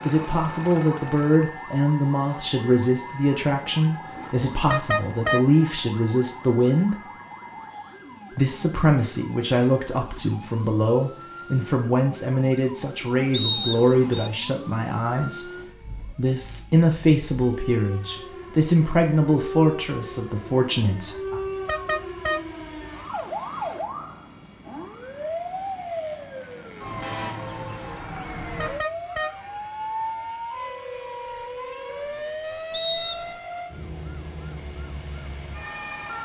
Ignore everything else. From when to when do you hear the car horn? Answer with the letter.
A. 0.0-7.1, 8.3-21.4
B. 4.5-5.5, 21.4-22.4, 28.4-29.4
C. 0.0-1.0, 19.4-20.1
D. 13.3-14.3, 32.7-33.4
B.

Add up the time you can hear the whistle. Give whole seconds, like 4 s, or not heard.
2 s.